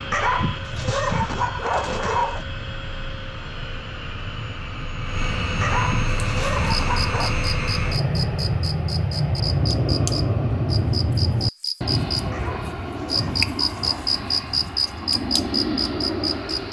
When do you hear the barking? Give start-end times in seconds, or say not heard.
0.1-2.5, 5.6-7.3, 12.3-14.1.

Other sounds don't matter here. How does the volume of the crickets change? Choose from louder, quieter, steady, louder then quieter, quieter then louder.
louder.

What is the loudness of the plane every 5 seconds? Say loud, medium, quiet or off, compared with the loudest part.
medium, loud, loud, loud.